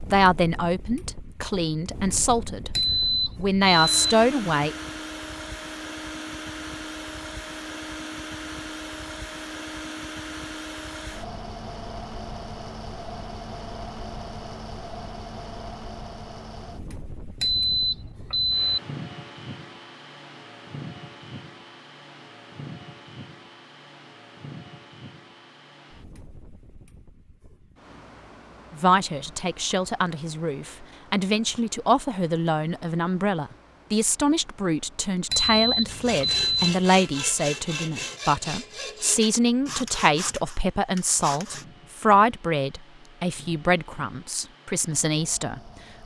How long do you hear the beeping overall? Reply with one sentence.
The beeping can be heard for 4 seconds in total.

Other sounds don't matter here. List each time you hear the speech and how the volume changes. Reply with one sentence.
You can hear the speech briefly from 0.1 to 2.7 s; briefly from 3.4 to 4.8 s; and from 28.7 to 45.6 s, at a steady volume.